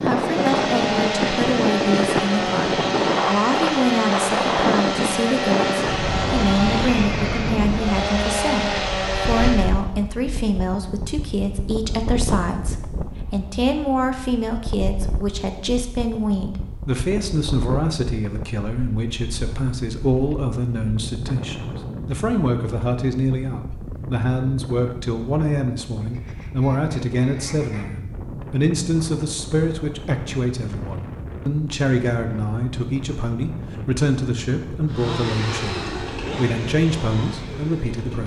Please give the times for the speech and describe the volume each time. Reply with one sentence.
You can hear the speech from 0.0 to 38.2 s, at a steady volume.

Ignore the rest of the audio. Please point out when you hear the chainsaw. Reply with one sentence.
The chainsaw can be heard from 0.0 to 9.8 s and from 34.9 to 38.2 s.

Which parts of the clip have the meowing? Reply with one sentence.
You can't hear the meowing here.